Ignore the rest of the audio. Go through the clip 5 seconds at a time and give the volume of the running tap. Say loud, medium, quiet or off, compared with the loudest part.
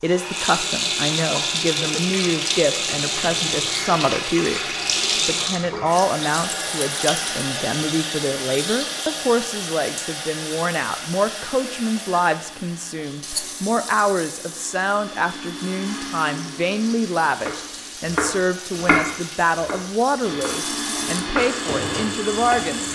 loud, loud, medium, quiet, medium.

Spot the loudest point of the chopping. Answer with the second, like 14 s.
19 s.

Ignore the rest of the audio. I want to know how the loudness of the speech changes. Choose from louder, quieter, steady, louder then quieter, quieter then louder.
steady.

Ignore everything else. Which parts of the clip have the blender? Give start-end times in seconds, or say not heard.
12.3-17.9, 20.2-22.9.